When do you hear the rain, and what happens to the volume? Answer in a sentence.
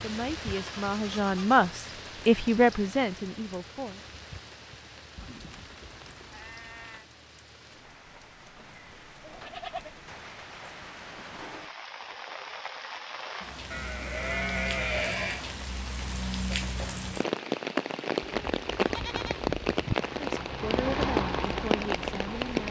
The rain can be heard from 0.0 to 22.6 s, getting quieter then louder.